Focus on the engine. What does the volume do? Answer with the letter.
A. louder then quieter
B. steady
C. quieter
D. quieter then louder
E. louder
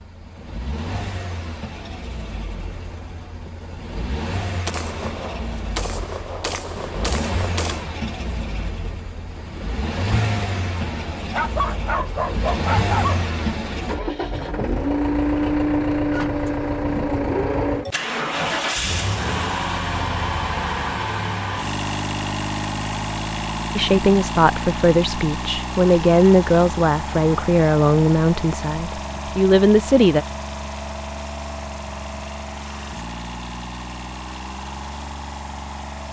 A.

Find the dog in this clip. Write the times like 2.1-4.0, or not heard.
11.3-13.2.